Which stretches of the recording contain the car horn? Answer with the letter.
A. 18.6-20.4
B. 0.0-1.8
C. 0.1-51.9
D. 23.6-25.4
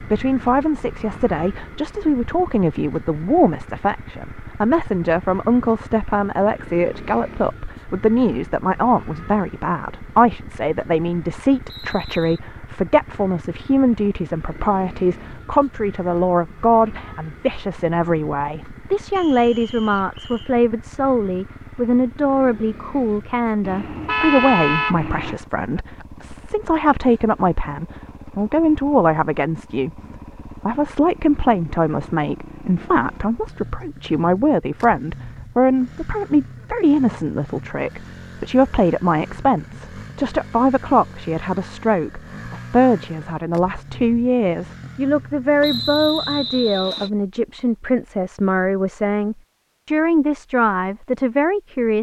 D.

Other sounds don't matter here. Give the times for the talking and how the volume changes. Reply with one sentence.
The talking can be heard from 0.1 to 51.9 s, at a steady volume.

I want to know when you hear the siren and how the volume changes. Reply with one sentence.
You can't hear the siren here.